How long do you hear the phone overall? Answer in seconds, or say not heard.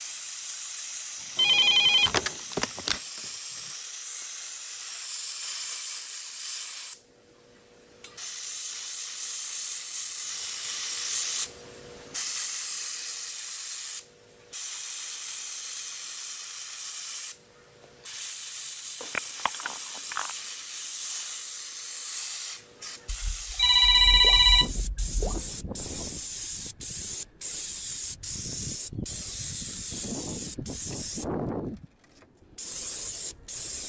5 s.